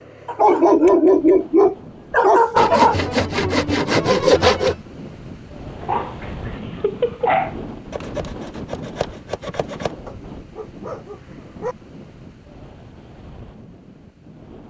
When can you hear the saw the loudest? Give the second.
4 s.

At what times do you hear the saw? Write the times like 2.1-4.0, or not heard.
2.5-4.8, 7.9-9.9.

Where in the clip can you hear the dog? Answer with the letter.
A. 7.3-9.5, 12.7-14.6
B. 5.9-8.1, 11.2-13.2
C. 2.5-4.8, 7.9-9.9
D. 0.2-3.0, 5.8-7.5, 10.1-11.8
D.